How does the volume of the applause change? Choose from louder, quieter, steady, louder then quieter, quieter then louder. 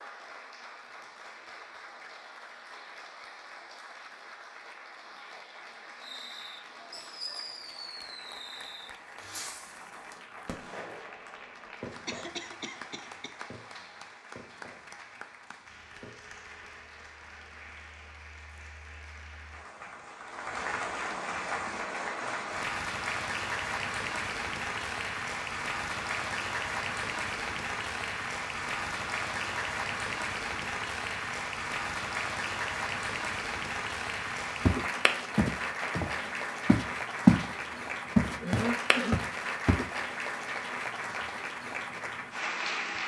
louder.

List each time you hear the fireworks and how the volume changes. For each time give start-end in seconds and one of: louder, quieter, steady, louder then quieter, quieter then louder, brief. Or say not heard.
6.0-16.4 quieter.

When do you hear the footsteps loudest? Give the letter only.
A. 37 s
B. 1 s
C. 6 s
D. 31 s
A.